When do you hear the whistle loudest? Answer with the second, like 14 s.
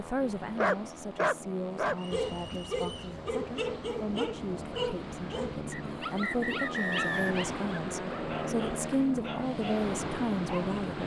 7 s.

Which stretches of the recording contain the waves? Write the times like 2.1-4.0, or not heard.
0.0-11.0.